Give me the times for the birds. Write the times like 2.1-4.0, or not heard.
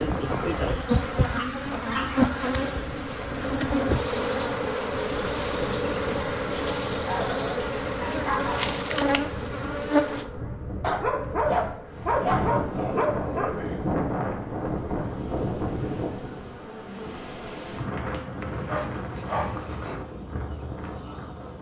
not heard.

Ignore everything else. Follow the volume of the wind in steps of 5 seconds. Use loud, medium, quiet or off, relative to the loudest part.
medium, medium, loud, loud, medium.